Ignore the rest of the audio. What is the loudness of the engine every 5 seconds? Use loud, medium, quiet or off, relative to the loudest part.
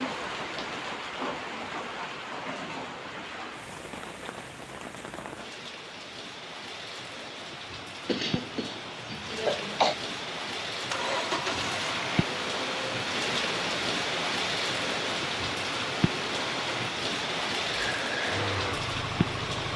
off, off, loud, loud.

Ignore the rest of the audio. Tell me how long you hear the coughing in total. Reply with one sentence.
You can hear the coughing for 2 seconds altogether.